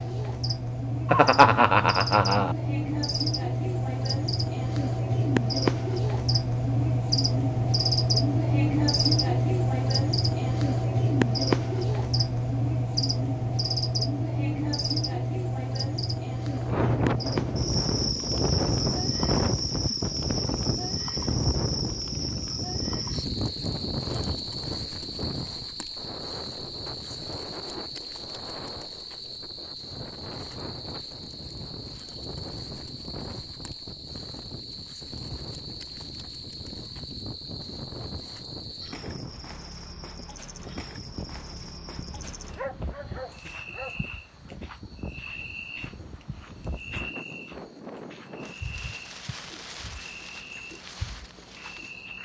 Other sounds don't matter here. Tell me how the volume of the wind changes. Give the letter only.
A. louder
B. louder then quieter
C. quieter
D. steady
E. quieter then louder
C.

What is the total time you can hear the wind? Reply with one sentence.
The wind can be heard for 36 seconds in total.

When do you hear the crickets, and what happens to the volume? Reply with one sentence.
You can hear the crickets from 0.0 to 52.2 s, getting quieter.